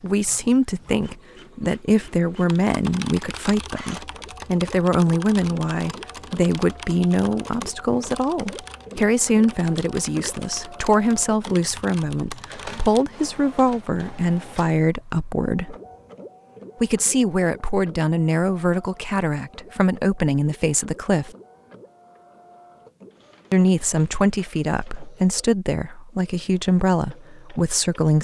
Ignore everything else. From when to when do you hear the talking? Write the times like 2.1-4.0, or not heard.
0.0-15.8, 16.8-21.3, 23.5-28.1.